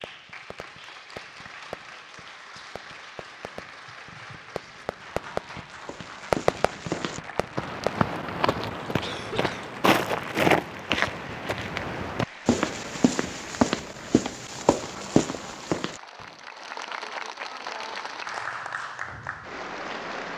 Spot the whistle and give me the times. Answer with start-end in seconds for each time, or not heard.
not heard.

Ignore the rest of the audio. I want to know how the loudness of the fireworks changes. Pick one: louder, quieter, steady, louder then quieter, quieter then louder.
quieter then louder.